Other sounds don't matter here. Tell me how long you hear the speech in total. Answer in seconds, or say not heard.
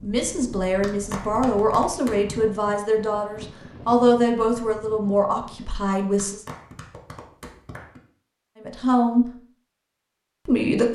8 s.